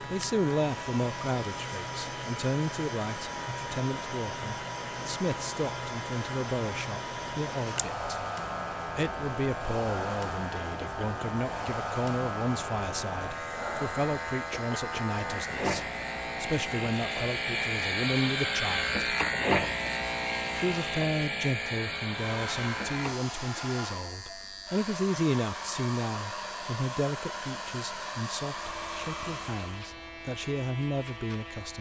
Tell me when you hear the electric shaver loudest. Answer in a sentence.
The volume of the electric shaver peaks at 19 seconds.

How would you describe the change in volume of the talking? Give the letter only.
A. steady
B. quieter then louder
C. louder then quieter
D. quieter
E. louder
A.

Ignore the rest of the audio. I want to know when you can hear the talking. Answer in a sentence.
You can hear the talking from 0.0 to 8.1 s, from 8.9 to 19.1 s and from 20.6 to 31.7 s.